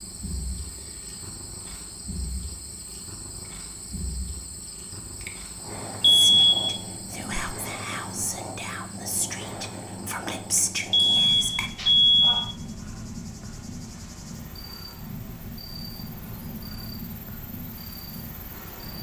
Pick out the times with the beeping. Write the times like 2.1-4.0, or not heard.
6.0-6.8, 10.9-12.6.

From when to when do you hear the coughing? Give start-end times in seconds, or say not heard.
not heard.